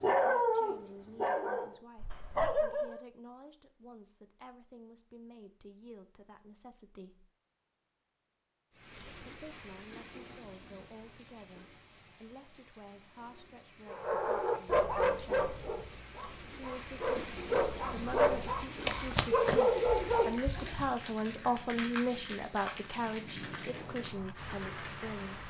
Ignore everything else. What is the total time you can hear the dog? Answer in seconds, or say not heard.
10 s.